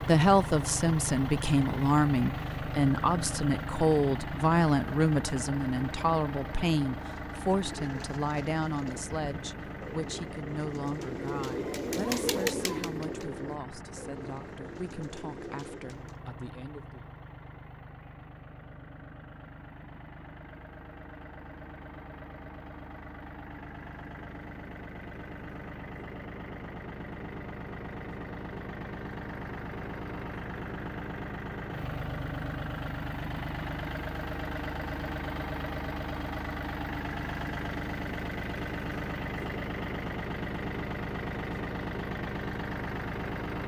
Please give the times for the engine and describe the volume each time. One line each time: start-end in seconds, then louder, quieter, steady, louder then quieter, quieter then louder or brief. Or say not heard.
0.0-43.6 quieter then louder.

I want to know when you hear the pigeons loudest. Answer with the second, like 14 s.
12 s.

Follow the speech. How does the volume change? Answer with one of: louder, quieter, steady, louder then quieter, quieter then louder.
quieter.